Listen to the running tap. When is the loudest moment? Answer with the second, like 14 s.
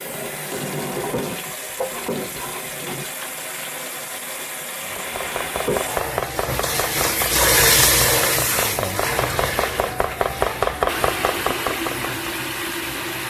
8 s.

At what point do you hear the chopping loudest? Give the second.
11 s.